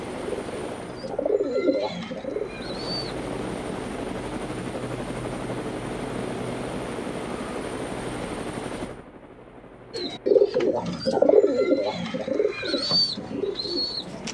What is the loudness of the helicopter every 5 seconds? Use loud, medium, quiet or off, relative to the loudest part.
loud, loud, quiet.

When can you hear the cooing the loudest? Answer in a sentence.
The volume of the cooing peaks at 11 seconds.